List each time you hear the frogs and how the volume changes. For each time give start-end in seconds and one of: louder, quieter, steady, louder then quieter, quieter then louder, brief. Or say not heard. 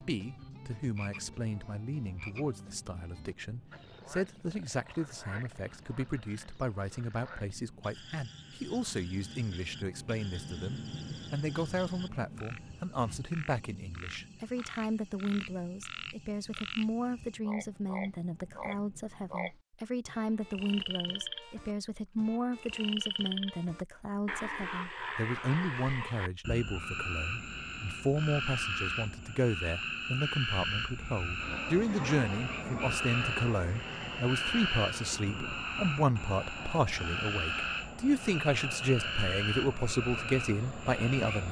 0.0-41.4 louder.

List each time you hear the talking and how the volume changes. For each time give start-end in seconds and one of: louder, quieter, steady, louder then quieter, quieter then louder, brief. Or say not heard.
0.0-41.4 louder.